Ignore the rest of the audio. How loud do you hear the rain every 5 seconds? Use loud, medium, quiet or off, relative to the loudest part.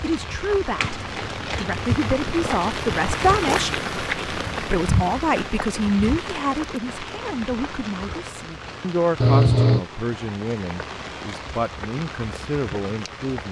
loud, medium, medium.